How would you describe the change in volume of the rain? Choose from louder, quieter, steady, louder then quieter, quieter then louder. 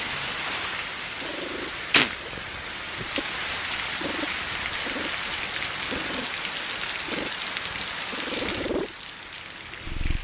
quieter.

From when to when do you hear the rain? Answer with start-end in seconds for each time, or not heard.
0.0-10.1.